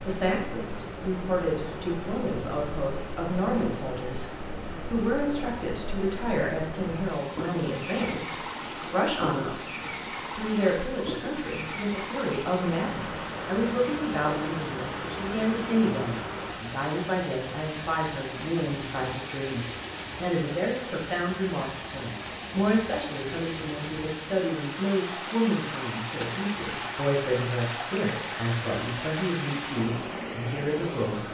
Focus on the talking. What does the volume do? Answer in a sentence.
The volume of the talking stays about the same.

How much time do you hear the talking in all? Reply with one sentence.
The talking can be heard for 31 seconds in total.